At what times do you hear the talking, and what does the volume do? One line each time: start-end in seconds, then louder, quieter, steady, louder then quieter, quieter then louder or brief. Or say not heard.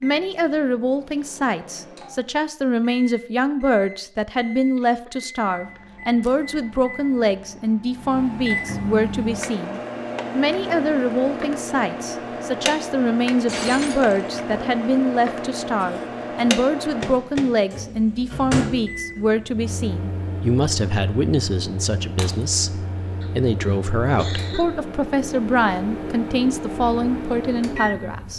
0.0-28.3 steady.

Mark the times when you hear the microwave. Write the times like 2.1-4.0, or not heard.
0.0-28.3.